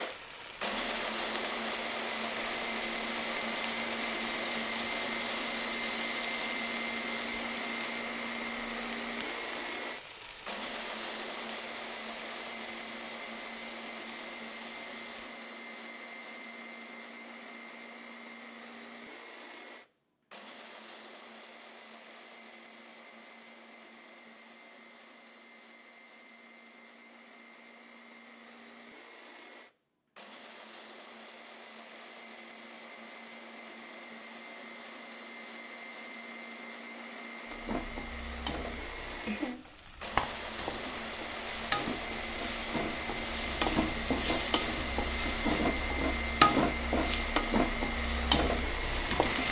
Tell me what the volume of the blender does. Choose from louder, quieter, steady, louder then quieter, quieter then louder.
quieter then louder.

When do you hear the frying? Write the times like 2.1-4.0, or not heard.
0.0-15.4, 37.5-49.4.